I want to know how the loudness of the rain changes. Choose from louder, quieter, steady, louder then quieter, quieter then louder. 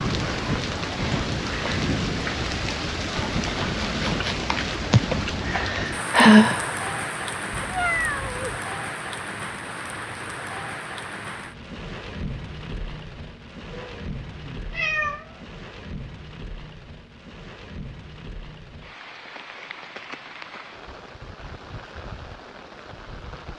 quieter.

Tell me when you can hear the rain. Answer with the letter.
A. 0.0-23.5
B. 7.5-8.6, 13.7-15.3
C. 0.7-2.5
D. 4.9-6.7
A.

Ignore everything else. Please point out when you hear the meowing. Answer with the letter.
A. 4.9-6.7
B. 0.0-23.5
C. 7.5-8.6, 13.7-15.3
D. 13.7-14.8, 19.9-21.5
C.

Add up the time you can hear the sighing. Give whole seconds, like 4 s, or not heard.
2 s.